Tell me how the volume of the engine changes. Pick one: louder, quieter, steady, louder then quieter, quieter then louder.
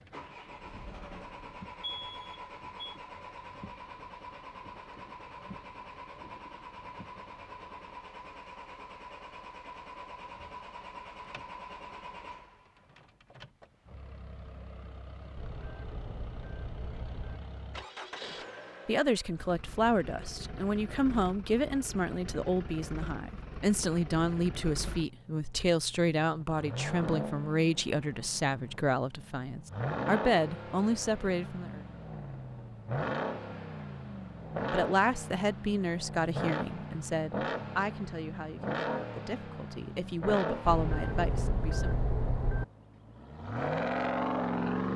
louder.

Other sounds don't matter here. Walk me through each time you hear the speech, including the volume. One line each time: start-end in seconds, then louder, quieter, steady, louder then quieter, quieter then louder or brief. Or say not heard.
18.9-31.8 steady
34.5-41.9 quieter then louder.